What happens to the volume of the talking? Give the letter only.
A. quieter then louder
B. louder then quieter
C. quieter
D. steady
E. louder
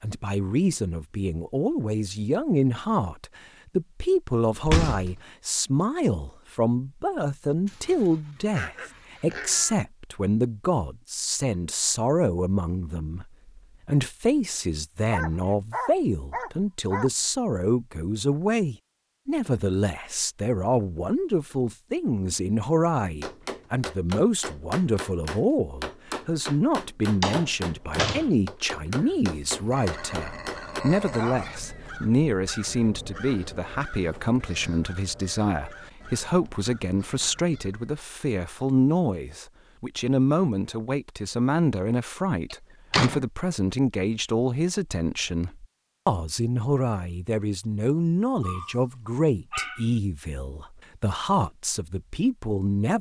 D.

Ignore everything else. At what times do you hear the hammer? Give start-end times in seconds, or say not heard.
23.2-30.9.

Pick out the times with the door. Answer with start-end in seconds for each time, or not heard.
4.6-5.2, 27.2-28.3, 42.5-43.2.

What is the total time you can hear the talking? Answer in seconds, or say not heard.
53 s.